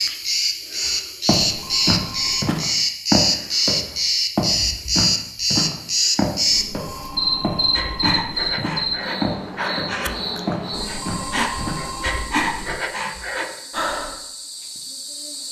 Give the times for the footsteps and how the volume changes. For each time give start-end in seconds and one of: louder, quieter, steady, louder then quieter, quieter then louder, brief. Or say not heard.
0.8-11.8 quieter.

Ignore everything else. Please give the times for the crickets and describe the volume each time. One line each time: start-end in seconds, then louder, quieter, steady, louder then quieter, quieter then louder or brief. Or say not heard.
0.0-15.4 quieter.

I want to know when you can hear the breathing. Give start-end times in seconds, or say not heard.
7.7-14.2.